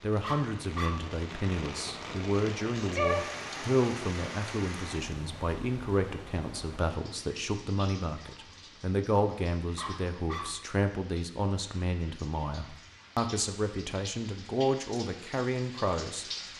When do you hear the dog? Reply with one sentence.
You can hear the dog from 0.2 to 1.1 s and from 9.8 to 10.7 s.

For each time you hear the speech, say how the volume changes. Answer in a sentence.
You can hear the speech from 0.0 to 16.2 s, at a steady volume.